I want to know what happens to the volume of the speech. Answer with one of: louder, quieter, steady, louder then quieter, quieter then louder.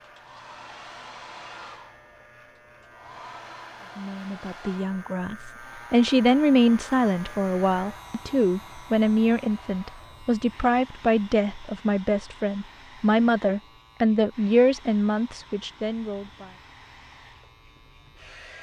steady.